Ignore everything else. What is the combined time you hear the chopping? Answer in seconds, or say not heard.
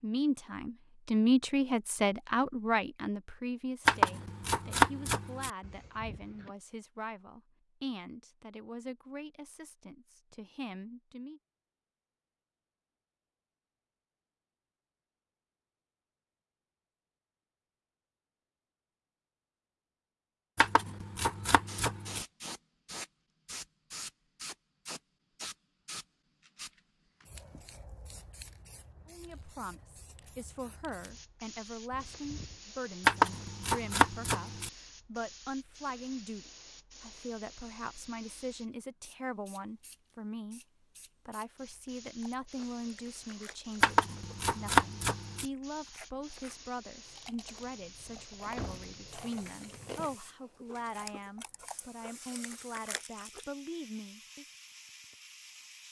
7 s.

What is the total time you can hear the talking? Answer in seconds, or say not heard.
36 s.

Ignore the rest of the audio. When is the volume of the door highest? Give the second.
49 s.